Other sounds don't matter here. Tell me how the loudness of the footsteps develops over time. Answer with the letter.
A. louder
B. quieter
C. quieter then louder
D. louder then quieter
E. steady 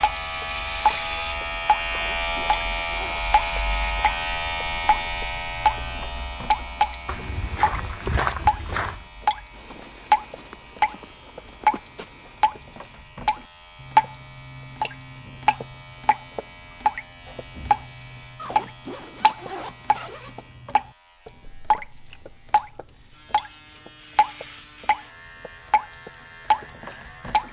B.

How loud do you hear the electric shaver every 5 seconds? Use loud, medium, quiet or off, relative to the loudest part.
loud, medium, quiet, quiet, quiet, quiet.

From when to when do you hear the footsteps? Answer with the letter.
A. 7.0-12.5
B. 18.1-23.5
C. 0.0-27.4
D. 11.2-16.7
A.